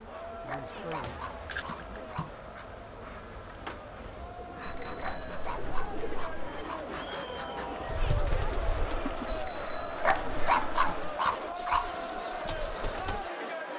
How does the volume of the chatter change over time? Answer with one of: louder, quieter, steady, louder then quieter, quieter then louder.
louder.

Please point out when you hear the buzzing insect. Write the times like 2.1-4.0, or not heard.
0.0-13.7.